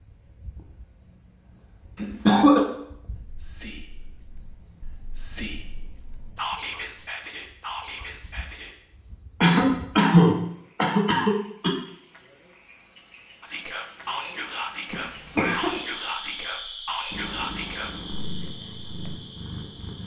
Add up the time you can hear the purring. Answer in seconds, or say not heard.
3 s.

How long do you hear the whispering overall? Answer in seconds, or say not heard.
11 s.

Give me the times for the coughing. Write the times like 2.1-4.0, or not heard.
1.9-2.6, 9.4-11.7, 14.9-15.8.